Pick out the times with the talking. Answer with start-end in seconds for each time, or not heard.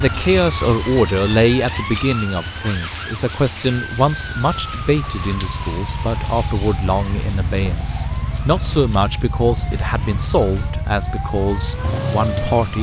0.0-12.7.